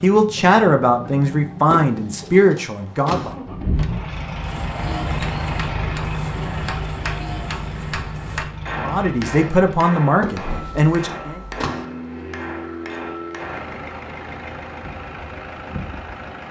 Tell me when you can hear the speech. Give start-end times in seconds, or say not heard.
0.0-3.4, 8.8-11.4.